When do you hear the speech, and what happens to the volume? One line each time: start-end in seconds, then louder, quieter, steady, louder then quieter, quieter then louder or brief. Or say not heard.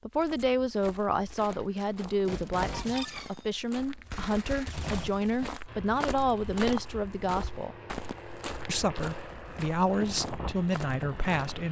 0.1-7.8 steady
8.7-11.6 brief.